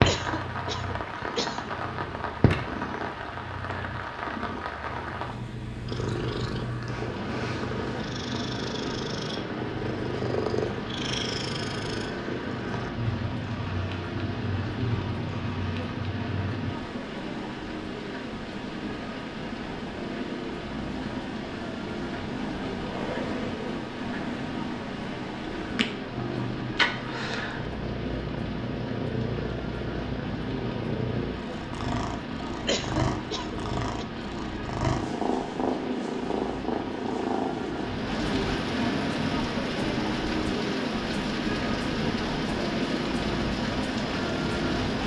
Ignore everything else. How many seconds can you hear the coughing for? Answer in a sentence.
The coughing can be heard for 3 seconds in total.